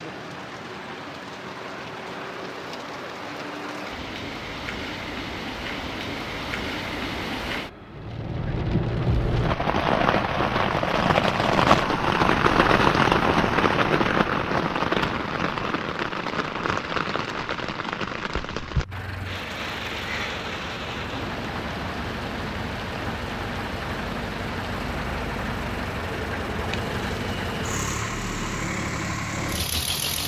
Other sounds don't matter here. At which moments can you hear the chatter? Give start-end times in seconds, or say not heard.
not heard.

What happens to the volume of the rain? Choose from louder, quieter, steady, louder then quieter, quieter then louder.
louder then quieter.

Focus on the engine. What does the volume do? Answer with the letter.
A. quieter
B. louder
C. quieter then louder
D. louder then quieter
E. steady
B.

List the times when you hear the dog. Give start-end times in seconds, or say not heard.
not heard.